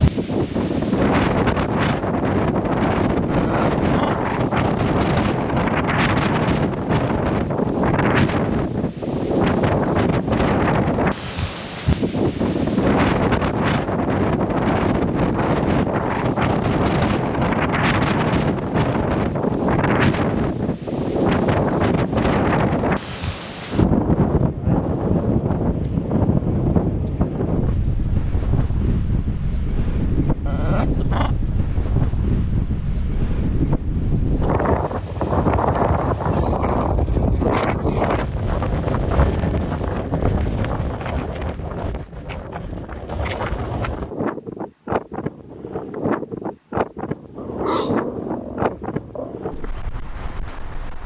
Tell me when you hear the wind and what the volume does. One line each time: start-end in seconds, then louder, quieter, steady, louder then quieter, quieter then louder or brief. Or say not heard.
0.0-51.0 quieter.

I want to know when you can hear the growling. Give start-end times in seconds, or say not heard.
3.2-4.2, 30.4-31.4, 47.4-49.4.